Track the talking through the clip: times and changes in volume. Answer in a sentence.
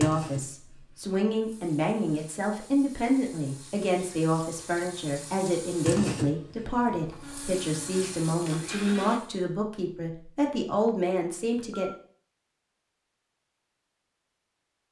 The talking can be heard from 0.0 to 11.9 s, at a steady volume.